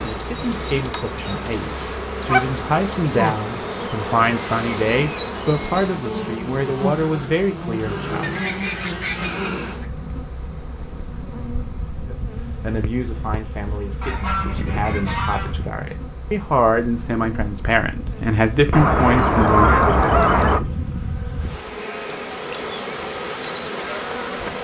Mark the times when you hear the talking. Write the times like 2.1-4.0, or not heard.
0.0-8.4, 12.1-20.1.